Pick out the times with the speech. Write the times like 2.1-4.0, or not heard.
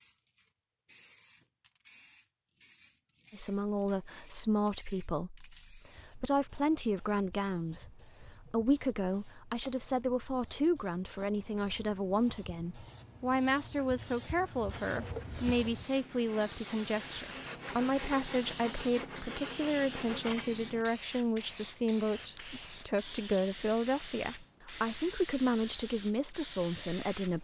3.3-27.3.